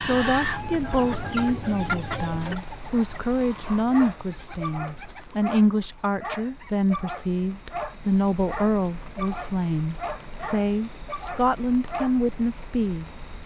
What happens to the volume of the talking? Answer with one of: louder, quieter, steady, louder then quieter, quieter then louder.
steady.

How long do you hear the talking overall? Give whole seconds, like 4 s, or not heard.
13 s.